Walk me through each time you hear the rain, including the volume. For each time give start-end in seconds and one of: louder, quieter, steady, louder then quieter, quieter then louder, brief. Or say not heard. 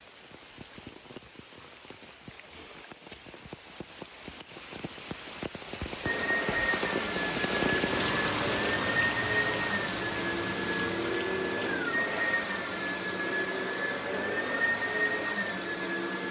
0.0-16.2 louder then quieter.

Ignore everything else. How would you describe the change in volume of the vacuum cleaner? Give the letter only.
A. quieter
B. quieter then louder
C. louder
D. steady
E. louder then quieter
D.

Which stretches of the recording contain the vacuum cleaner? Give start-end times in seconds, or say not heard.
6.0-16.2.